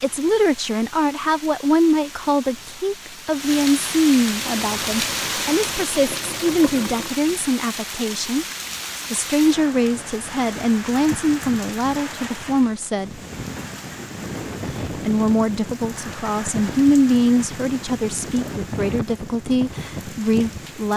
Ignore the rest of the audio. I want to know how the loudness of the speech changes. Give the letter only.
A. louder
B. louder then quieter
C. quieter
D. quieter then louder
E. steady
E.